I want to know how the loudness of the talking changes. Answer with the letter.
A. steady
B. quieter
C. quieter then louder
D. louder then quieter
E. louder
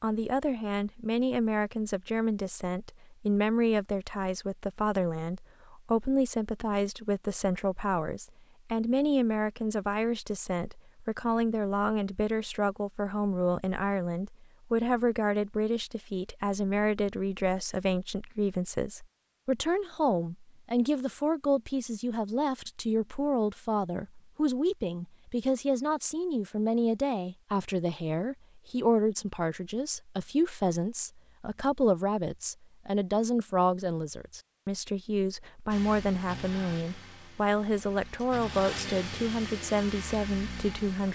A.